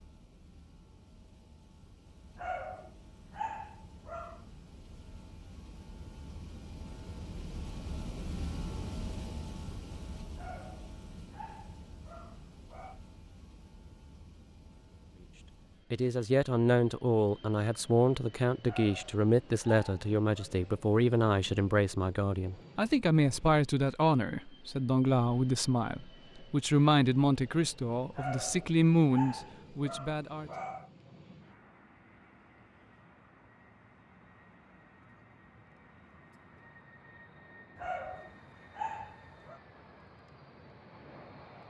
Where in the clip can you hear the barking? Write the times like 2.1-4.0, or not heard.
2.4-4.5, 10.3-13.0, 18.6-20.4, 28.1-30.9, 37.8-39.6.